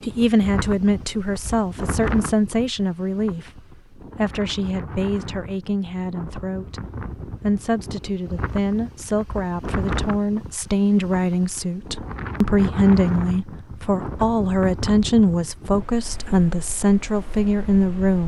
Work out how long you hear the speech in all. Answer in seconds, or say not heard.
18 s.